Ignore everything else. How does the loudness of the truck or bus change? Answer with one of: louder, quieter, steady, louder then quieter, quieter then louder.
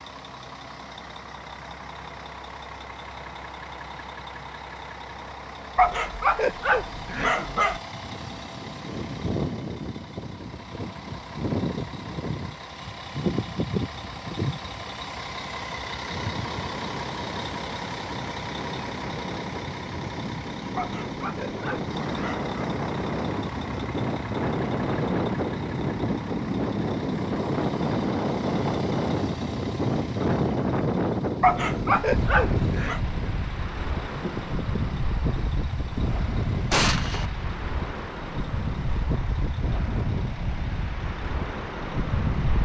louder then quieter.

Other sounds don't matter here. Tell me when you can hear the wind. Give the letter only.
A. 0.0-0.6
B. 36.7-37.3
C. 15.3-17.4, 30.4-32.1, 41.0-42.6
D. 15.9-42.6
D.